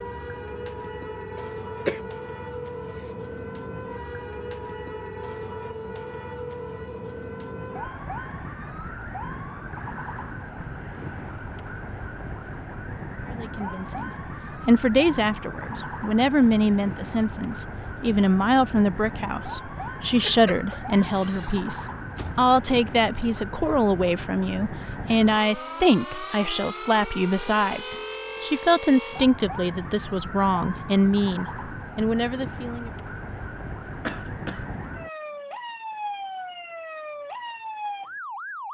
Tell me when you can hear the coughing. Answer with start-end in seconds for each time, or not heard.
1.4-2.0, 20.2-21.6, 34.0-34.6.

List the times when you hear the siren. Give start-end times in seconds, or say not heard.
0.0-38.6.